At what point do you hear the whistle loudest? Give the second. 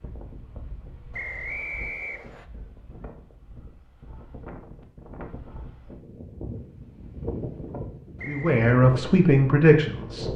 2 s.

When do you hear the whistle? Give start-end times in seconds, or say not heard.
1.1-2.5, 8.2-8.7.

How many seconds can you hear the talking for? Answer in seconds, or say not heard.
2 s.